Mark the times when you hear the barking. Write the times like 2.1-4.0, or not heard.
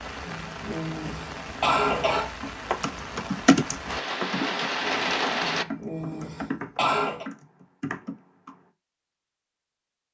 not heard.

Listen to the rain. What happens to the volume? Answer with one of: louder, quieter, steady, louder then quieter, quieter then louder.
louder.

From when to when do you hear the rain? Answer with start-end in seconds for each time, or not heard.
0.0-5.7.